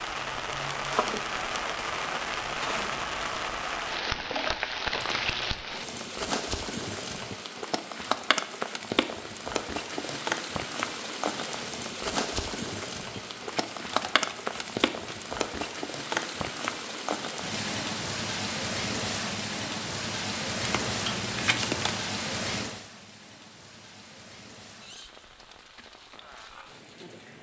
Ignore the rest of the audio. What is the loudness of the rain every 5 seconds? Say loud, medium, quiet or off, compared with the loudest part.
loud, loud, loud, loud, loud, quiet.